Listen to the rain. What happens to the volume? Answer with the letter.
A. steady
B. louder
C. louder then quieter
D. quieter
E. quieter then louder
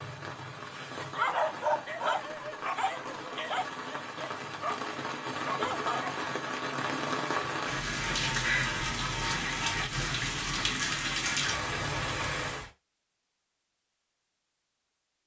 B.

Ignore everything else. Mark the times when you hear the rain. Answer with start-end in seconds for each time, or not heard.
0.0-12.7.